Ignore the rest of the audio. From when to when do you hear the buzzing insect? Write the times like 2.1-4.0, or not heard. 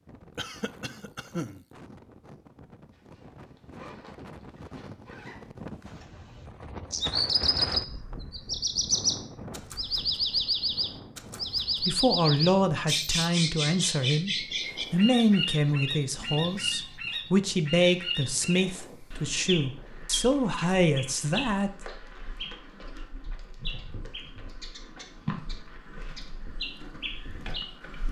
not heard.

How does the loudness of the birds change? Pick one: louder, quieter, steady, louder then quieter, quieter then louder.
quieter.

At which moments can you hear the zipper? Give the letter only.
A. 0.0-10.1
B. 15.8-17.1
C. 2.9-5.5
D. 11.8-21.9
C.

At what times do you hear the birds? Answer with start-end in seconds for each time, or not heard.
6.9-28.0.